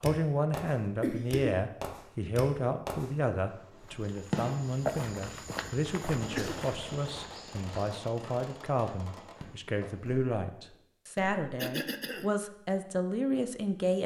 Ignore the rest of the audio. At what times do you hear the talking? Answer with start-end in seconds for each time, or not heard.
0.0-14.0.